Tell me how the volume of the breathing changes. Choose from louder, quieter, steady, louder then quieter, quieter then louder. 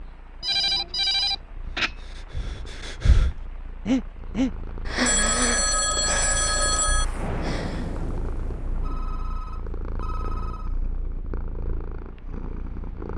louder then quieter.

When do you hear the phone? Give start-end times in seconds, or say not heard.
0.4-1.9, 5.0-7.0, 8.8-10.8.